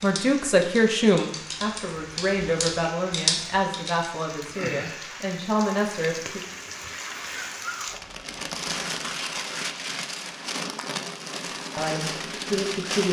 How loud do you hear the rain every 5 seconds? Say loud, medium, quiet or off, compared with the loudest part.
medium, loud, loud.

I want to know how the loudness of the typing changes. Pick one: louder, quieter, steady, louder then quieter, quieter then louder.
louder.